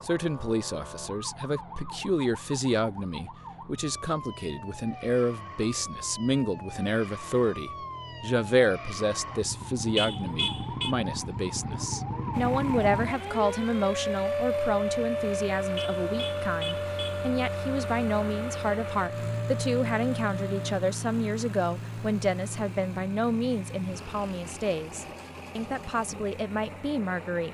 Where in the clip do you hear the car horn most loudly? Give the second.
10 s.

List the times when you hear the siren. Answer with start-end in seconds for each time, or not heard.
0.0-20.8.